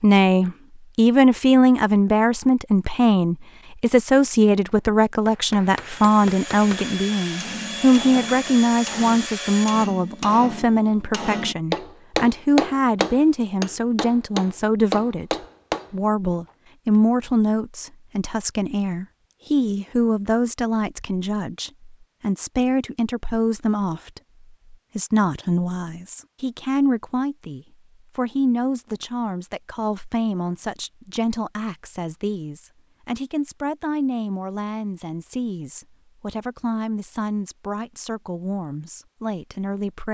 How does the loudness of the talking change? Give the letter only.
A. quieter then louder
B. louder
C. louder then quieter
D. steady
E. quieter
E.